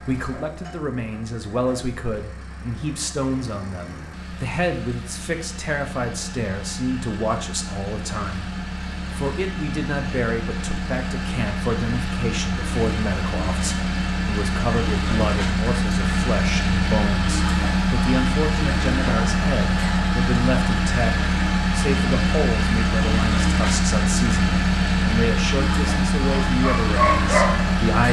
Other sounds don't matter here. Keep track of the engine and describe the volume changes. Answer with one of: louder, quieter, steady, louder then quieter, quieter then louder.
louder.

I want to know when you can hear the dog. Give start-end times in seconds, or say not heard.
26.3-27.6.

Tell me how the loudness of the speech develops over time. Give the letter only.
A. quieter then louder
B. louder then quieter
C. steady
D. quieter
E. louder
C.